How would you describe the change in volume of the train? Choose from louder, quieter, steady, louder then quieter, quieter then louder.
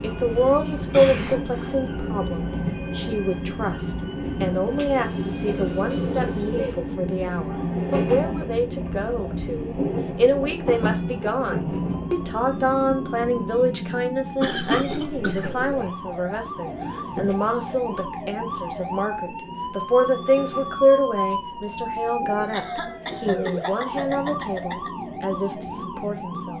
quieter.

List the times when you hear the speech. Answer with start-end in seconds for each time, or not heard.
0.0-26.5.